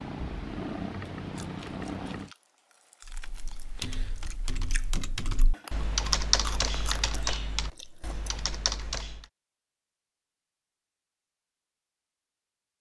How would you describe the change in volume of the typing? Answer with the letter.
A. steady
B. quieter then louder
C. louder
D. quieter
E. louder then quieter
E.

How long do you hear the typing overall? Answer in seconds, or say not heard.
6 s.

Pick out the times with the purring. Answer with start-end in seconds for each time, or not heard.
0.0-2.3.